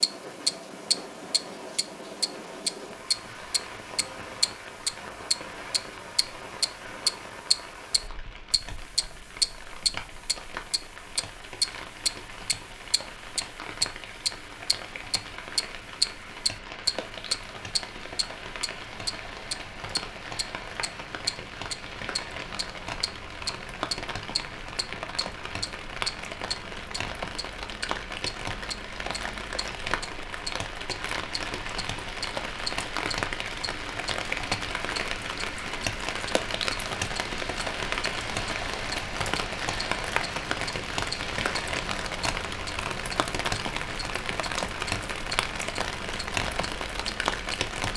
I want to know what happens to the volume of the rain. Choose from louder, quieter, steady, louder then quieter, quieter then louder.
louder.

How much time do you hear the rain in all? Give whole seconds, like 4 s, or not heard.
48 s.